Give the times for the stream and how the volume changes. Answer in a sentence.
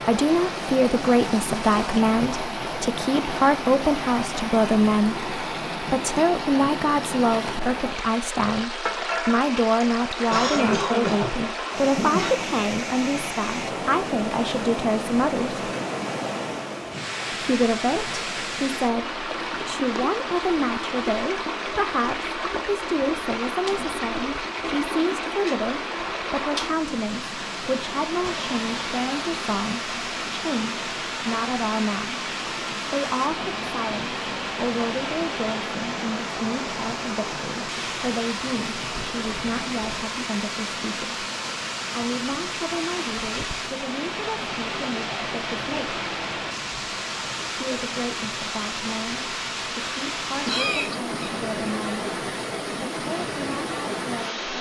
You can hear the stream from 0.0 to 54.5 s, at a steady volume.